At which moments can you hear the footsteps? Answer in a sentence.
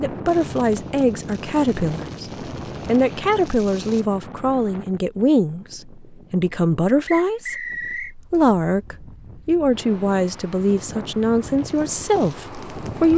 The footsteps can't be heard in this clip.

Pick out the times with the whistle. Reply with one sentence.
The whistle can be heard from 7.0 to 8.2 s.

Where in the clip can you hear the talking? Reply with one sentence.
The talking can be heard from 0.0 to 13.1 s.